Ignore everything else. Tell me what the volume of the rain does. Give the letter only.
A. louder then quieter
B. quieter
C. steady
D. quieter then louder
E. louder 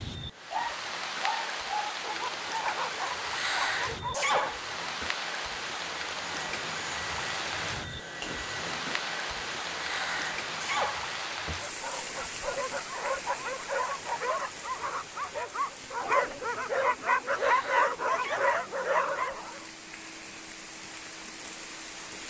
B.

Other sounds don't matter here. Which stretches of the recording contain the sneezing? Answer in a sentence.
You can hear the sneezing from 3.2 to 5.0 s, from 9.7 to 11.6 s and from 17.2 to 18.5 s.